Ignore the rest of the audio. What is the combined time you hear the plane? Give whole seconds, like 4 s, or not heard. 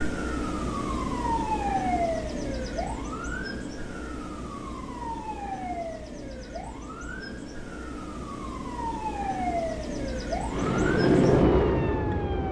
2 s.